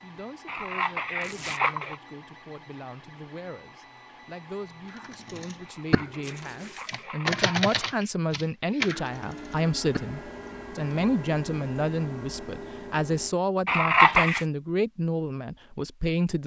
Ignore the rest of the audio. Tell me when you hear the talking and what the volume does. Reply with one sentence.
You can hear the talking from 0.0 to 16.4 s, getting louder.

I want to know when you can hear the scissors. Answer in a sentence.
You can hear the scissors from 0.5 to 1.9 s, from 5.7 to 8.0 s and from 13.7 to 14.4 s.